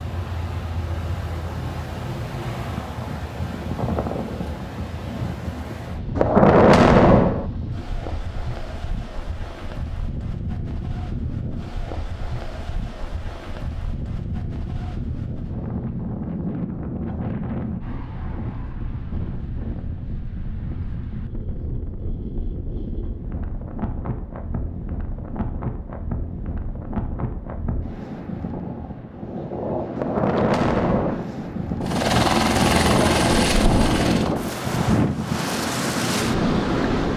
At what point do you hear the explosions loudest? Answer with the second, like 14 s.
7 s.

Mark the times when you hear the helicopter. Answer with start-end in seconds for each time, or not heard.
31.8-34.4.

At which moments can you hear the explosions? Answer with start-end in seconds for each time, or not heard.
6.2-7.5, 29.9-31.2.